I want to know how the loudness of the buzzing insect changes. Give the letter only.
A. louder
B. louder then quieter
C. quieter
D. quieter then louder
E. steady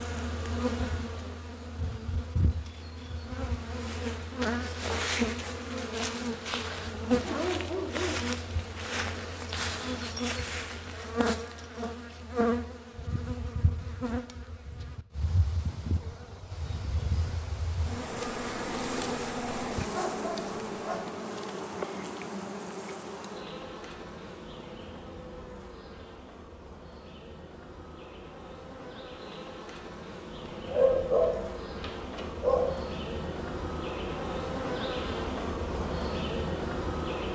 D.